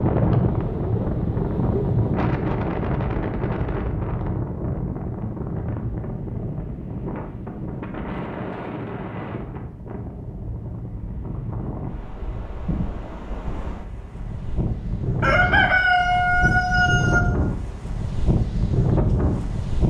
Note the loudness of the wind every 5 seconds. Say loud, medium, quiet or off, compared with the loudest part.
loud, medium, medium, loud.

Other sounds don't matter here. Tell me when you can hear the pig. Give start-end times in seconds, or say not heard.
not heard.